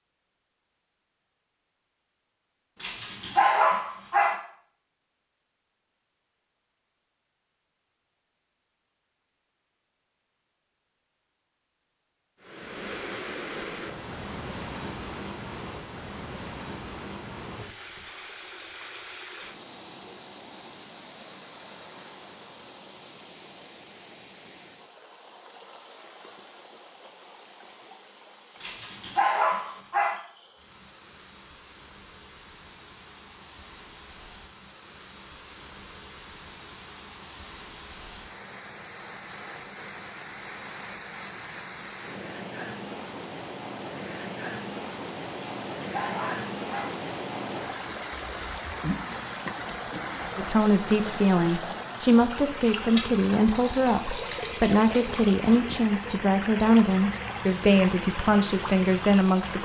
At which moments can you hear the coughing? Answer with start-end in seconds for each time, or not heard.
not heard.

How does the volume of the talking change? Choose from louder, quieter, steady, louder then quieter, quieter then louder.
steady.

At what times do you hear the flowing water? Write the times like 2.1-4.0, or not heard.
12.4-59.6.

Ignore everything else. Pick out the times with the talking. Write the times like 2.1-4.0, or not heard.
50.4-59.6.